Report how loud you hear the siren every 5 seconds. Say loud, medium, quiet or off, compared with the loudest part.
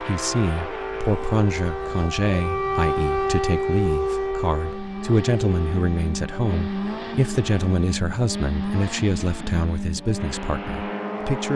loud, medium, off.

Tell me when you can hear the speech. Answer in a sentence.
You can hear the speech from 0.0 to 11.5 s.